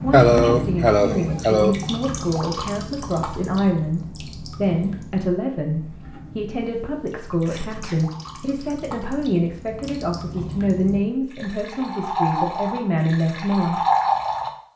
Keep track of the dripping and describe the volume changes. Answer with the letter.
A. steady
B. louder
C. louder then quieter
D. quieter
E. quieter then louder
E.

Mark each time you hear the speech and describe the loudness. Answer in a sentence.
The speech can be heard from 0.0 to 13.8 s, at a steady volume.